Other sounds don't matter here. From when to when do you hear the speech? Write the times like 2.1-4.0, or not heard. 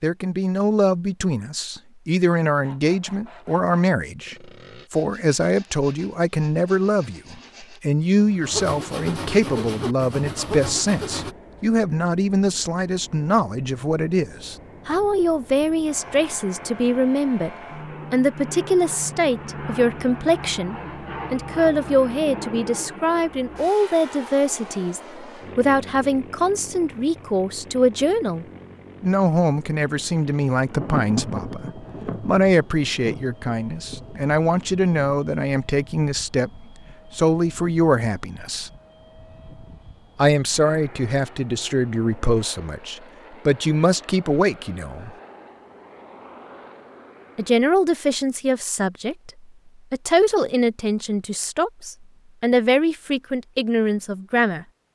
0.0-17.5, 18.1-38.7, 40.1-45.1, 47.4-54.6.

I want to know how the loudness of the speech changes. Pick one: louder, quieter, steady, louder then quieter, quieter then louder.
steady.